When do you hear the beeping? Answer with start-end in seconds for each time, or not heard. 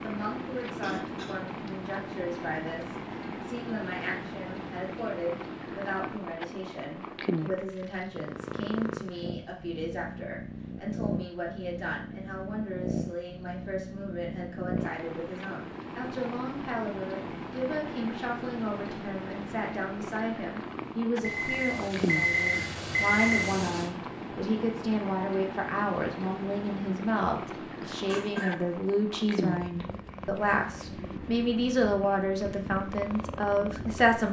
21.2-23.9.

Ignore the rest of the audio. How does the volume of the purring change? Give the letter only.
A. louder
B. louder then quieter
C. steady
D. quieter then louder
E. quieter
C.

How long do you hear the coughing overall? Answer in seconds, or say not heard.
2 s.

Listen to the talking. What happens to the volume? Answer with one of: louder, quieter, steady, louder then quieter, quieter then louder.
louder.